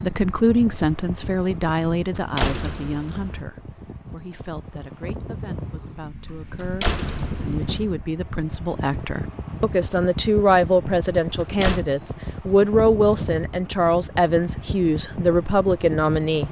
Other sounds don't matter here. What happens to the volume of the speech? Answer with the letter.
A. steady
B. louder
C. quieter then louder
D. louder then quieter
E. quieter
C.